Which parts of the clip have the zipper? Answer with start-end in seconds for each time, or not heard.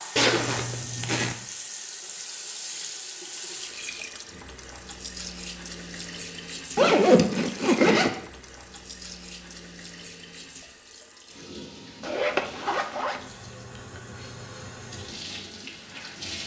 0.1-1.4, 6.8-8.1, 12.0-13.2.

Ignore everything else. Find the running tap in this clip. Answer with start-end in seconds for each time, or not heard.
0.0-16.4.